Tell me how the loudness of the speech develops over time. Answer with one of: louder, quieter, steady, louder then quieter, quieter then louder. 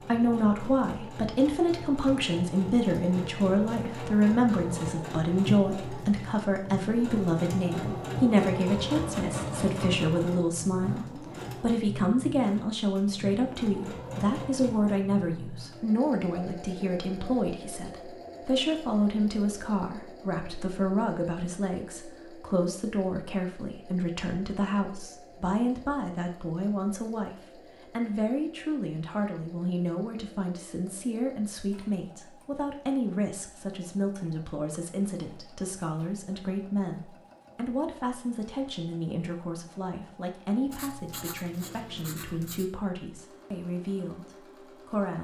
quieter.